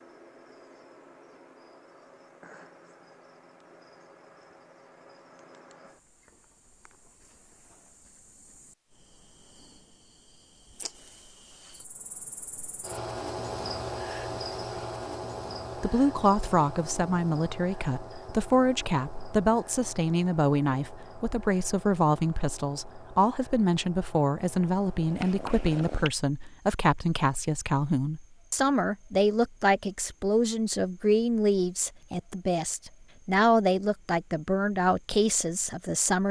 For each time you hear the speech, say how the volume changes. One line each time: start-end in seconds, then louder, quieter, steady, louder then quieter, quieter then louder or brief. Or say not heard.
15.8-36.2 steady.